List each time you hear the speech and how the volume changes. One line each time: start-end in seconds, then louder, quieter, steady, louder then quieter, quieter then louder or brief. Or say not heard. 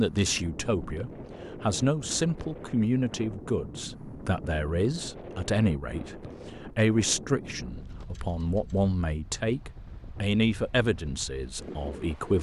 0.0-12.3 steady.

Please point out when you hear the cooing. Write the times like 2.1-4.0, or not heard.
not heard.